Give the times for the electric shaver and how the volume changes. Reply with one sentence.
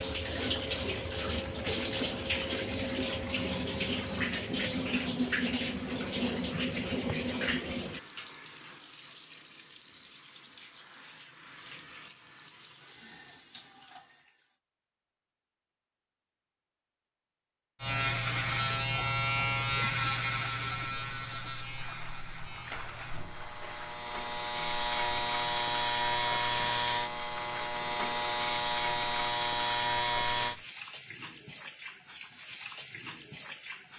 The electric shaver can be heard from 17.8 to 30.6 s, getting quieter then louder.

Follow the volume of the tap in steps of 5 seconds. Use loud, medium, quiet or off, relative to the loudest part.
loud, loud, quiet, off, quiet, quiet, quiet.